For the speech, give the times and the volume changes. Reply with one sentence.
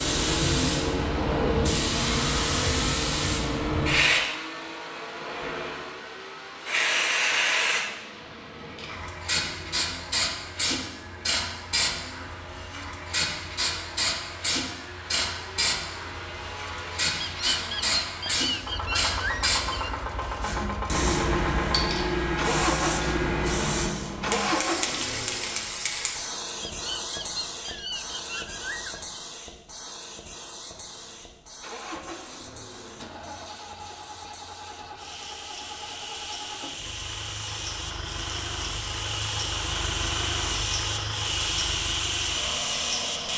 You can't hear the speech here.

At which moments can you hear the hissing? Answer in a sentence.
The hissing can be heard from 0.0 to 43.3 s.